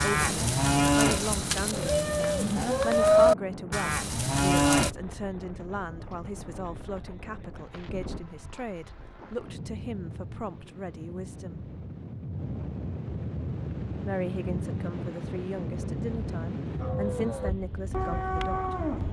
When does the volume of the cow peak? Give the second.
3 s.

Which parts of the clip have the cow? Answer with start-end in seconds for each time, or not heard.
0.0-4.9, 16.8-19.0.